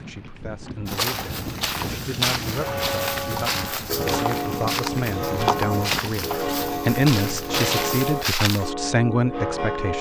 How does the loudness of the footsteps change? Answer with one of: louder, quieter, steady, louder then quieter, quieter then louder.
steady.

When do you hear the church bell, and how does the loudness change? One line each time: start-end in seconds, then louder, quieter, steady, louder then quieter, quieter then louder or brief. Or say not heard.
2.5-9.9 steady.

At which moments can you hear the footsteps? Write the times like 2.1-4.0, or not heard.
0.8-8.7.